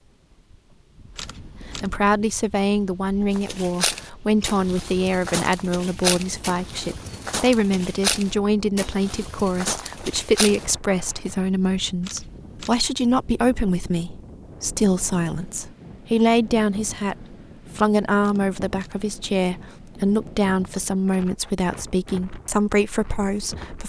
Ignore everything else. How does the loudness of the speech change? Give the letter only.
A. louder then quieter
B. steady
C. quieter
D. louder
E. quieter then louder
B.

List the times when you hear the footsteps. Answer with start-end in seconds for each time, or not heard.
3.3-10.7.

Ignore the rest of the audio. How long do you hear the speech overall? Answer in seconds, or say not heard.
22 s.